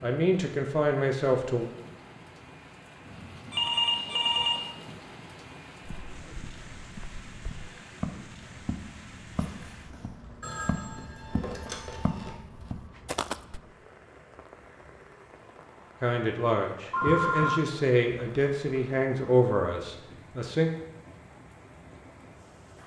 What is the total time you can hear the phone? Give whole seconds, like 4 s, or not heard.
4 s.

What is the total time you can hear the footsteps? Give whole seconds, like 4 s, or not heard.
8 s.